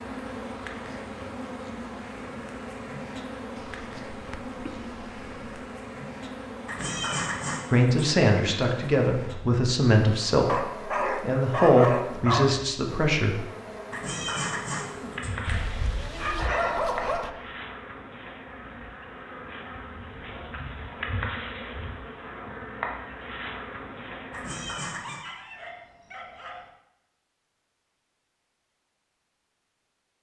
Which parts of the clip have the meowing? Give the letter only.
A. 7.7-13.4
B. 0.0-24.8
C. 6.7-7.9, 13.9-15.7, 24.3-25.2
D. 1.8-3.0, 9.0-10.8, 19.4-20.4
C.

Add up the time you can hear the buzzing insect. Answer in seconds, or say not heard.
25 s.